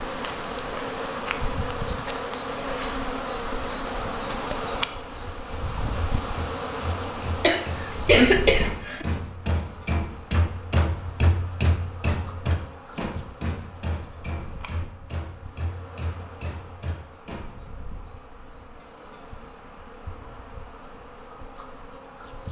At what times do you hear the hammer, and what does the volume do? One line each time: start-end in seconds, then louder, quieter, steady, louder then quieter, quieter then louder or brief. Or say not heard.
5.5-17.5 louder then quieter.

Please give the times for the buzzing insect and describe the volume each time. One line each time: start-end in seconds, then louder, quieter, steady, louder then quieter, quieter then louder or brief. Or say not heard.
0.0-22.4 quieter.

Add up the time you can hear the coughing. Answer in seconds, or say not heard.
2 s.